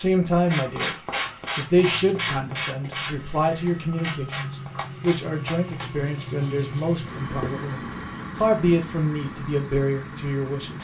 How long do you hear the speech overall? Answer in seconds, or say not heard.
11 s.